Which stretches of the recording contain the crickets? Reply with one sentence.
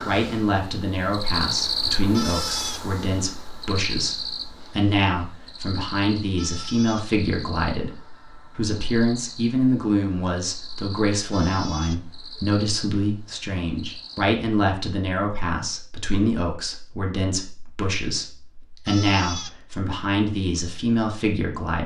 You can hear the crickets from 0.0 to 14.2 s.